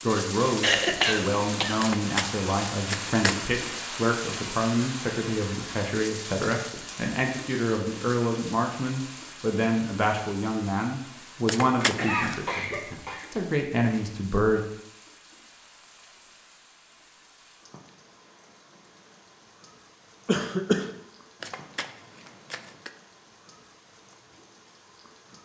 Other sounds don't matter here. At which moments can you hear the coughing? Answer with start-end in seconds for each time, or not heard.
0.6-1.8, 11.8-13.3, 20.2-20.9.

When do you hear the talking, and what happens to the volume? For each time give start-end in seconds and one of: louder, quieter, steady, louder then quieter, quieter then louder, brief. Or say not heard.
0.0-14.6 steady.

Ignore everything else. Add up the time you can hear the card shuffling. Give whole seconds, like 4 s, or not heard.
4 s.